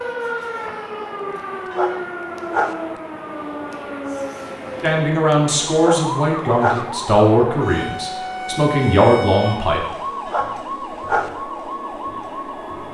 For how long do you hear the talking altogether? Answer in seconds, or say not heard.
5 s.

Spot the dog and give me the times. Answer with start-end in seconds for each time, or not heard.
1.7-2.8, 5.8-6.8, 10.2-11.3.